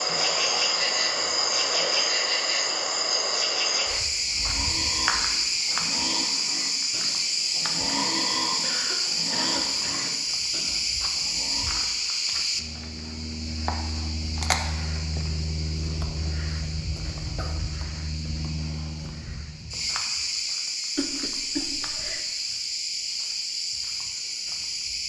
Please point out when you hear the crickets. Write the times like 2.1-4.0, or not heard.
0.0-25.0.